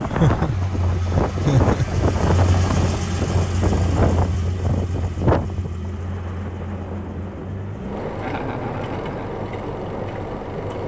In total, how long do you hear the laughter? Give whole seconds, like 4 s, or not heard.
3 s.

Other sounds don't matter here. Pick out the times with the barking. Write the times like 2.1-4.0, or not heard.
not heard.